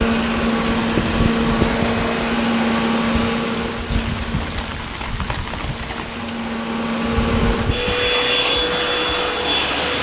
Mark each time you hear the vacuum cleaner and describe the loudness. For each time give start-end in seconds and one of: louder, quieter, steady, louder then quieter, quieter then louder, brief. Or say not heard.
0.0-9.9 quieter then louder.